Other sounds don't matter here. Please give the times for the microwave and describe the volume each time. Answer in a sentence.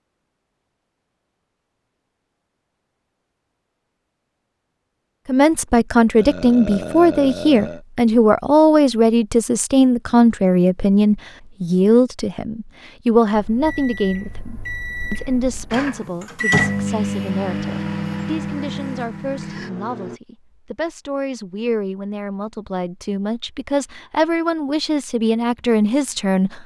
You can hear the microwave from 13.3 to 20.2 s, getting louder then quieter.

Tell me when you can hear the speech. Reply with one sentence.
You can hear the speech from 5.2 to 26.6 s.